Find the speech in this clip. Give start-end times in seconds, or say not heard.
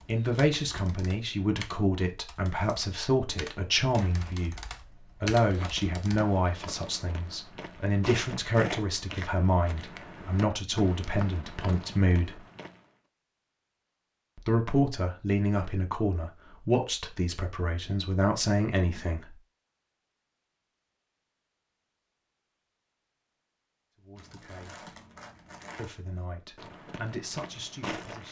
0.1-12.4, 14.3-19.4, 23.9-24.9, 25.8-28.2.